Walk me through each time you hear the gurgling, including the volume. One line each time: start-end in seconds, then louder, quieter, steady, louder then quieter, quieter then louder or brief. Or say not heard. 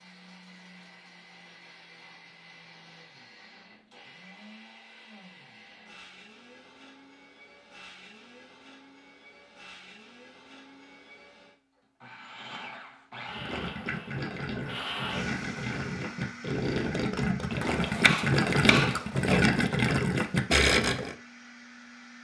13.2-21.1 louder.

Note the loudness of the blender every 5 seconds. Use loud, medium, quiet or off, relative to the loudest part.
medium, medium, loud, loud, medium.